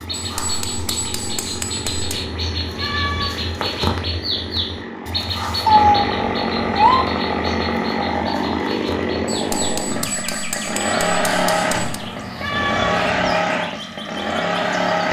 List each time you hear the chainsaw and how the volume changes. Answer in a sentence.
The chainsaw can be heard from 0.0 to 15.0 s, getting louder.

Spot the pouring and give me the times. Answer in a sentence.
You can't hear the pouring here.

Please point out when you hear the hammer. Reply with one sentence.
You can hear the hammer from 0.1 to 2.2 s and from 9.2 to 12.0 s.